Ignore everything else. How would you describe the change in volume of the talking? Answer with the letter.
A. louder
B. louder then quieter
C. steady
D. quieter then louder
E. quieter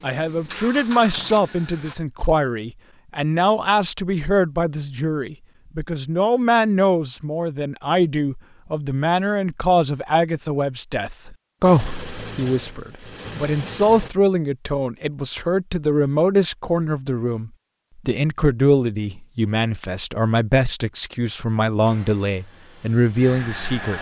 C.